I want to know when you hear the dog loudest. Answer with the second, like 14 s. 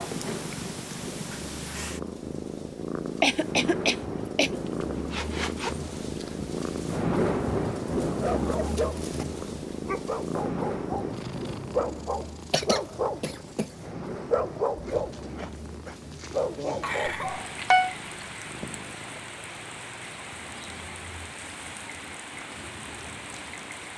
18 s.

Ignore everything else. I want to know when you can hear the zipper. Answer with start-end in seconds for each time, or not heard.
4.7-6.4.